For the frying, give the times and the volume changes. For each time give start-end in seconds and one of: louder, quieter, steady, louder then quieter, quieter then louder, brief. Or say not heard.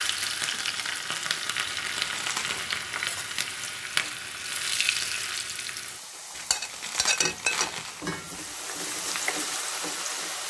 0.0-10.4 steady.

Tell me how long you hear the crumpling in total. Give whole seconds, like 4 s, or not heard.
3 s.